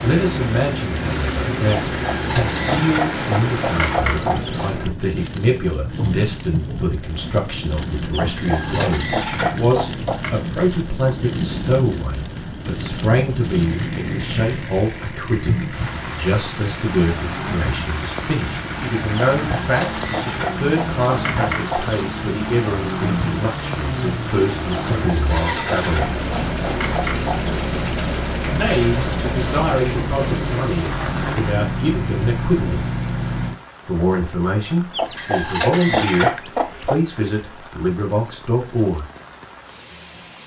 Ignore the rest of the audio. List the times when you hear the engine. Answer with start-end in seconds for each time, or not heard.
0.0-4.9, 13.3-33.5.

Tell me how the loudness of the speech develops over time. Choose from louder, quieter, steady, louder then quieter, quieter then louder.
steady.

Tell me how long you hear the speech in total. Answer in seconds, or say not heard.
36 s.